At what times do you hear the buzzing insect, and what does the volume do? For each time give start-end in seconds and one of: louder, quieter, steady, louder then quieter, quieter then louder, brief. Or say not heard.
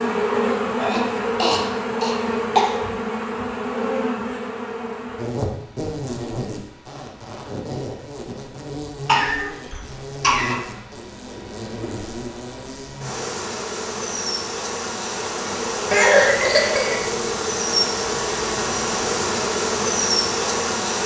0.0-21.0 quieter then louder.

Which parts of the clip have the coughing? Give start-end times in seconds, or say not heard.
0.8-2.8, 9.1-10.6, 15.9-17.1.